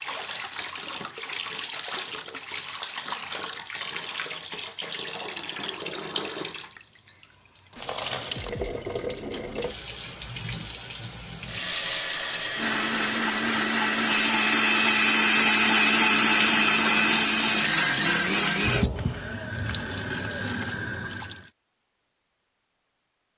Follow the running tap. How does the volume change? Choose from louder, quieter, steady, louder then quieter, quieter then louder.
steady.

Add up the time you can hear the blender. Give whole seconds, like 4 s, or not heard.
6 s.